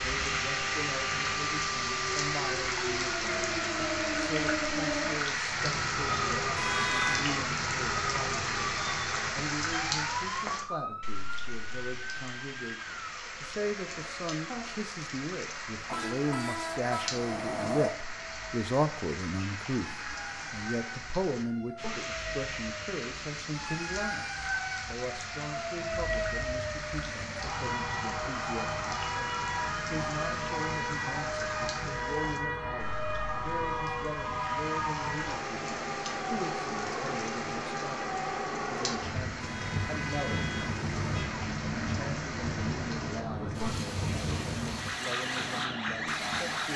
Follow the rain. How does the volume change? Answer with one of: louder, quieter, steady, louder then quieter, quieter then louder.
quieter.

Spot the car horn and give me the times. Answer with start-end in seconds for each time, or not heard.
6.5-7.2, 15.8-17.9, 39.4-41.3.